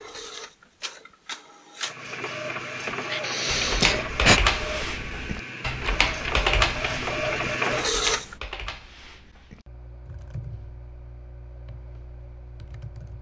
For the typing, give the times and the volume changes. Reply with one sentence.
The typing can be heard from 2.9 to 13.1 s, getting quieter.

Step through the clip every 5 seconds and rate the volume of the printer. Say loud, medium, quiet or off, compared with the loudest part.
medium, loud, off.